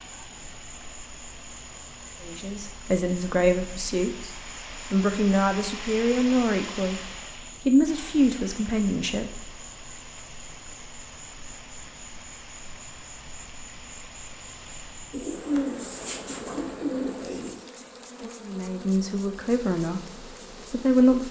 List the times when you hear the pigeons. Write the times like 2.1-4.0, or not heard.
15.1-17.6.